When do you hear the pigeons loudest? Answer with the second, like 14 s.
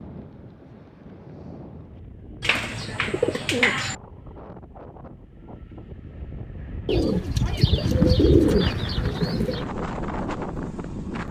8 s.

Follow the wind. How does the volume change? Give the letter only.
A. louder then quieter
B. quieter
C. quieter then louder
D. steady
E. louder
E.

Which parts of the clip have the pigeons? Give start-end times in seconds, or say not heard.
2.4-4.0, 6.8-9.7.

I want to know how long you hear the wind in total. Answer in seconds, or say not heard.
11 s.